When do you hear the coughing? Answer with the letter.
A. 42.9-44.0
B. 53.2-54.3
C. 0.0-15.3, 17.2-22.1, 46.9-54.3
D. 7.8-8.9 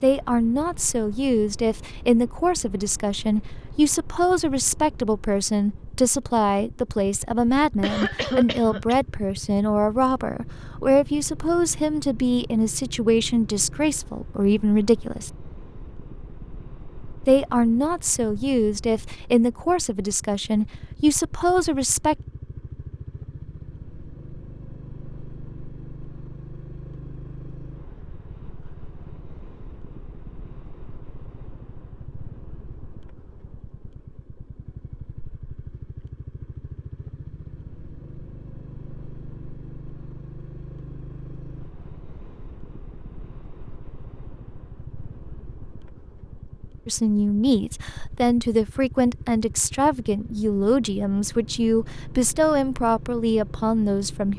D.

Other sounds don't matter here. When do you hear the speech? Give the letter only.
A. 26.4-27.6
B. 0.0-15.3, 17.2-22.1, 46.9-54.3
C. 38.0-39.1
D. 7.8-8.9
B.